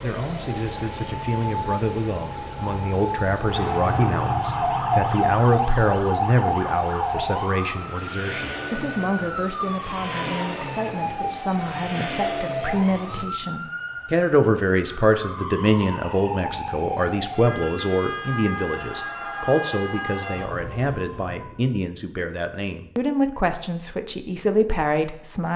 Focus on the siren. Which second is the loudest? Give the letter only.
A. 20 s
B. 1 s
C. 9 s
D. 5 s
D.